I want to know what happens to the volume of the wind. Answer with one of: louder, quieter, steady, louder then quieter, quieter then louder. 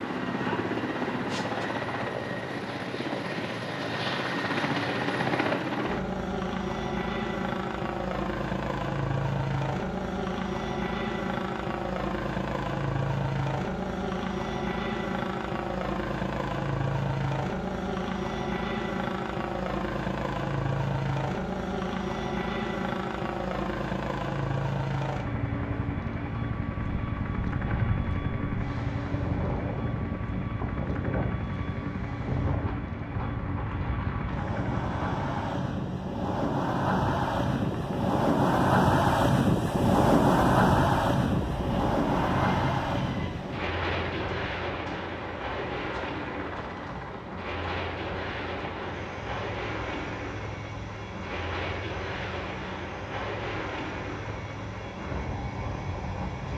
louder then quieter.